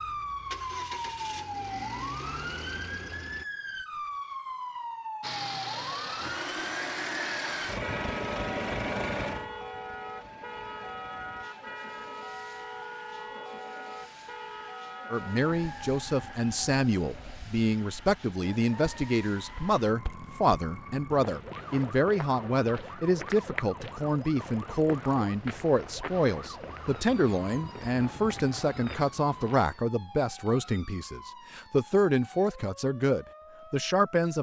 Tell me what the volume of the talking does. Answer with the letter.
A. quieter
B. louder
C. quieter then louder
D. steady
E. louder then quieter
D.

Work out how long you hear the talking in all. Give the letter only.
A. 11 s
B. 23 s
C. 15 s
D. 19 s
D.